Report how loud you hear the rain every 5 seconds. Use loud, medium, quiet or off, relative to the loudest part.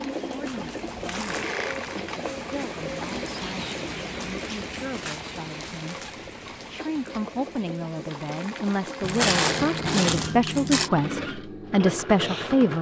loud, medium, off.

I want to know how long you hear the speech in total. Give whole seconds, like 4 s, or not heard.
12 s.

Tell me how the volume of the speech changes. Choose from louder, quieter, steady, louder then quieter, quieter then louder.
louder.